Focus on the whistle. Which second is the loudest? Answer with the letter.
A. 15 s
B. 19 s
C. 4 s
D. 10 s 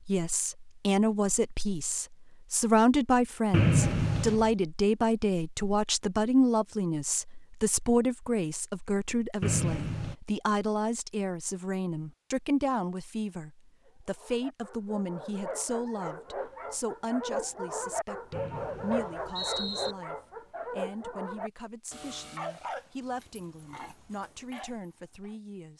C.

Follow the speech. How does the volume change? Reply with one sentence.
The loudness of the speech goes down.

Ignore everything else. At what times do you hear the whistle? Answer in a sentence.
The whistle can be heard from 3.5 to 4.5 s, from 9.4 to 10.2 s and from 18.3 to 19.9 s.